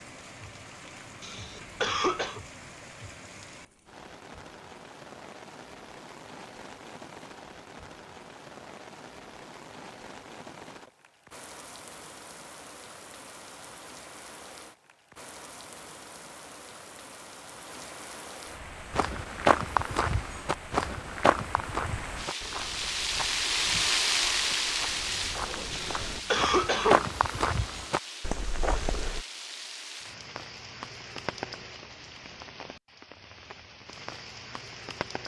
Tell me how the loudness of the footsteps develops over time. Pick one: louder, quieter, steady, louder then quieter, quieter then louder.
quieter then louder.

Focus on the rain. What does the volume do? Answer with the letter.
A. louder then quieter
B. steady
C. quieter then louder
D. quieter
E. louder
A.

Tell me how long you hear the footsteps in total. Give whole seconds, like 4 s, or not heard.
10 s.